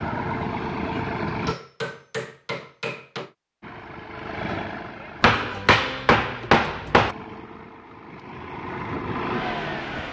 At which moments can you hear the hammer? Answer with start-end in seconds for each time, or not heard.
1.2-3.3, 5.2-7.2.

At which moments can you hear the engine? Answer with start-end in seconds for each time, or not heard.
0.0-1.6, 3.6-5.4, 6.9-10.0.